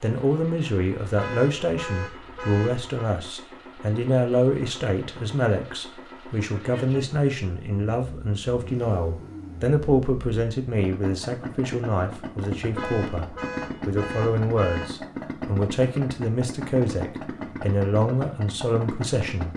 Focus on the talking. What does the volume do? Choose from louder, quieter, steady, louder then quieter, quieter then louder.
steady.